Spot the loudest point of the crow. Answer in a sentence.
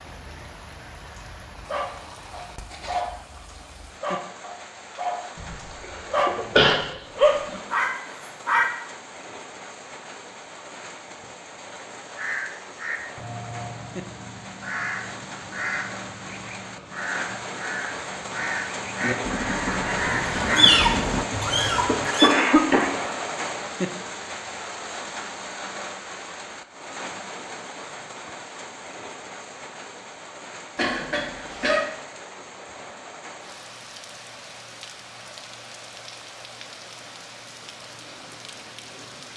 The loudest moment of the crow is at 21 seconds.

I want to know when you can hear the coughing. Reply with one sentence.
You can hear the coughing from 5.3 to 6.8 s, from 21.9 to 23.1 s and from 30.8 to 31.9 s.